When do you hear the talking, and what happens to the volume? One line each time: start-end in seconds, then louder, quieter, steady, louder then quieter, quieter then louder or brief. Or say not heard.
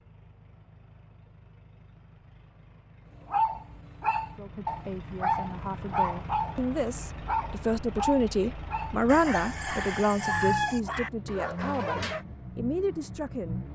4.3-13.6 louder then quieter.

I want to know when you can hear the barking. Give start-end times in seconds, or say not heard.
3.2-12.2.